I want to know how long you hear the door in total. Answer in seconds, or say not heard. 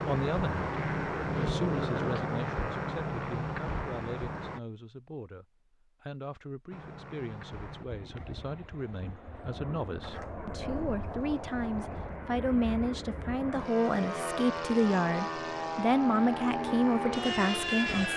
2 s.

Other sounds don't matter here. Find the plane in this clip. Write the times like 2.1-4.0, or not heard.
0.0-4.6, 6.7-18.1.